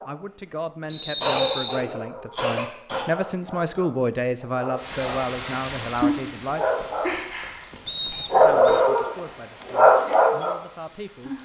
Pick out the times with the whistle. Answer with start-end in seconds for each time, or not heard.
0.9-1.8, 7.8-8.6.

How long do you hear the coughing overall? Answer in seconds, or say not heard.
3 s.